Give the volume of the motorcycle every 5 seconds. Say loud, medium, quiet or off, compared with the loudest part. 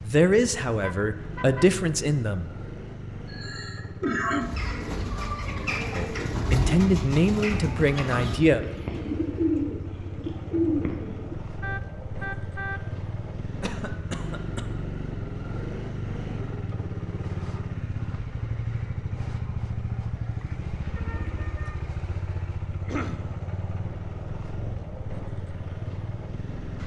medium, medium, loud, loud, loud, loud.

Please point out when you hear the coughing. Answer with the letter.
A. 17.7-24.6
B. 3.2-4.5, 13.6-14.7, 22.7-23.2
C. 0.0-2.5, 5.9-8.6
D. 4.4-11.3
B.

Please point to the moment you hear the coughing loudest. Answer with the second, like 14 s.
4 s.